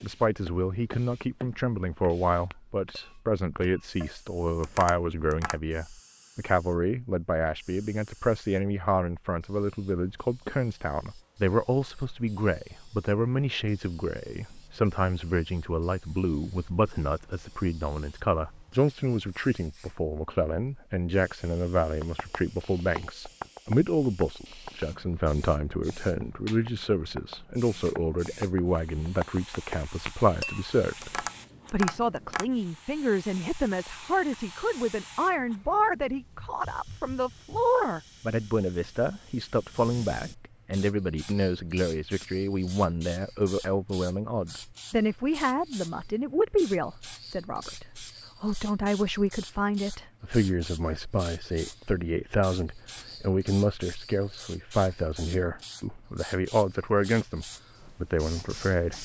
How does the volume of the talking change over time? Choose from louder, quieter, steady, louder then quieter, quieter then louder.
steady.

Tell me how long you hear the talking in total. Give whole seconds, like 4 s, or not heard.
59 s.